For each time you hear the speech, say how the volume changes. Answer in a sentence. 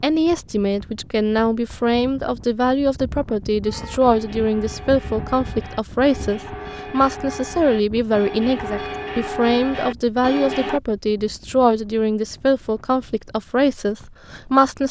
The speech can be heard from 0.0 to 14.8 s, at a steady volume.